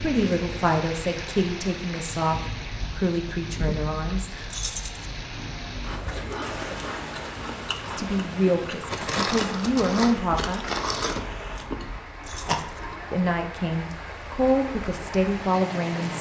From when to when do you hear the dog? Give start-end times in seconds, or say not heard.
not heard.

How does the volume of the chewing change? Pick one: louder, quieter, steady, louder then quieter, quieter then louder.
louder.